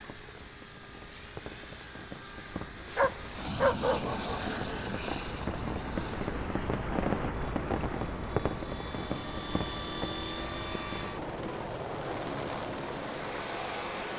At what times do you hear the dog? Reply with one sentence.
You can hear the dog from 3.0 to 4.8 s.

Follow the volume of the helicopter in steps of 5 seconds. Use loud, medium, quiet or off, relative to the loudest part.
loud, medium, loud.